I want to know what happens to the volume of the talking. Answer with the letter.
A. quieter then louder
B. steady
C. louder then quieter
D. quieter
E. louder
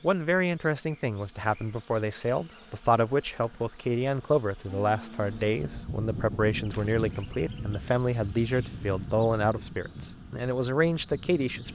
B.